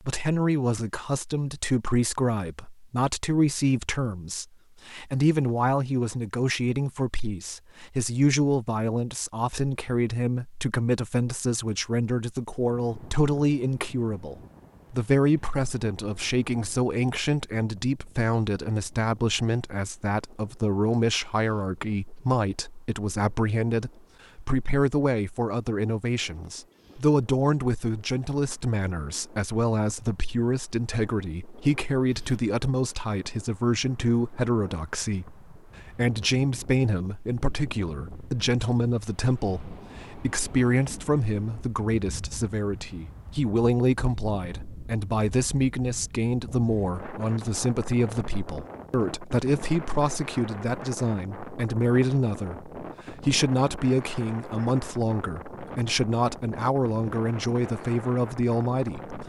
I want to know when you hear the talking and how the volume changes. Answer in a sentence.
The talking can be heard from 0.0 to 59.2 s, at a steady volume.